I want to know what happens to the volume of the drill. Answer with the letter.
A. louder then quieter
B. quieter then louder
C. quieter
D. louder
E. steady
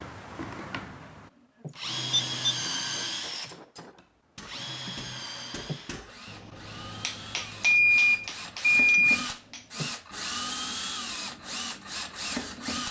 B.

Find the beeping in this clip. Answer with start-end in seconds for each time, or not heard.
2.1-2.5, 7.3-9.2.